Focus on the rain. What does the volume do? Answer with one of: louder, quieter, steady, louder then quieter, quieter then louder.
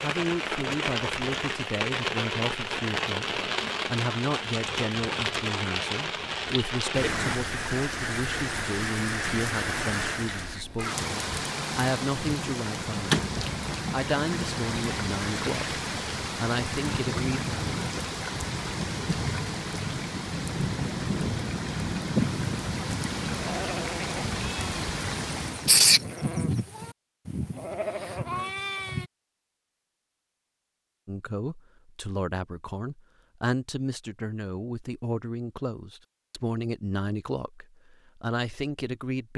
steady.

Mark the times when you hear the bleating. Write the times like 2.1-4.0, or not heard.
22.1-29.1.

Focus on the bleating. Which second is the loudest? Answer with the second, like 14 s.
26 s.